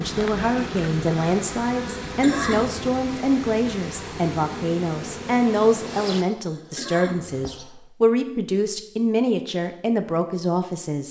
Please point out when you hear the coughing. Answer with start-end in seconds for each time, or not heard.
2.0-2.8, 6.4-7.3.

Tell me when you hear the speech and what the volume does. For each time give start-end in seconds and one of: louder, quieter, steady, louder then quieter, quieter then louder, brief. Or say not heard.
0.0-11.0 steady.